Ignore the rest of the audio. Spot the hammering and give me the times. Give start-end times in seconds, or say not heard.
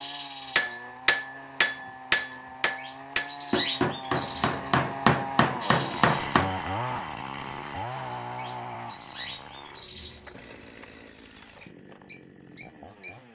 0.6-6.5.